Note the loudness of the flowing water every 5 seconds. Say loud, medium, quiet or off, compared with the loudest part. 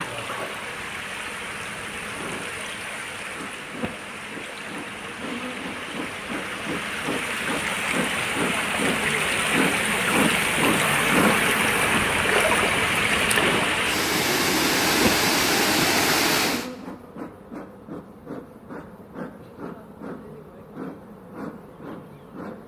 quiet, medium, loud, loud, off.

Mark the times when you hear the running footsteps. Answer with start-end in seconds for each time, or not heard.
not heard.